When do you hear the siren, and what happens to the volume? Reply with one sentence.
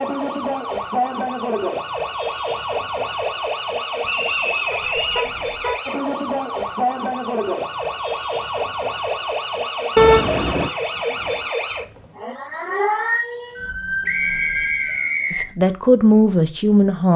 The siren can be heard from 0.0 to 15.1 s, at a steady volume.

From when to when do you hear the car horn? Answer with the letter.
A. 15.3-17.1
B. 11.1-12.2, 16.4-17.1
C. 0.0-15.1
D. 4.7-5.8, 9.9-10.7
D.